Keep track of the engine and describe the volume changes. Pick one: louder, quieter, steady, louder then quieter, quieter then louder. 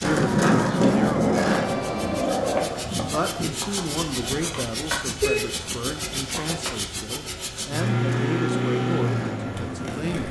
louder.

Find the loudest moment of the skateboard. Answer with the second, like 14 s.
1 s.